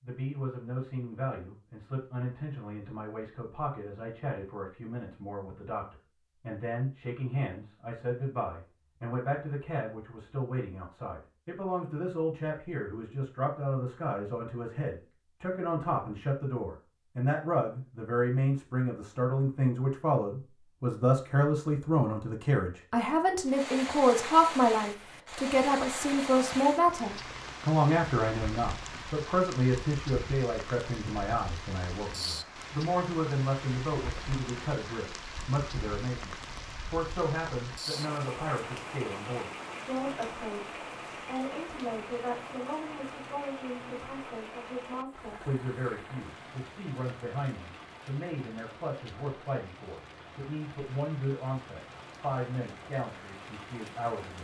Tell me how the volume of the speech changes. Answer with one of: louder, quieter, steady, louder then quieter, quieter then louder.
louder then quieter.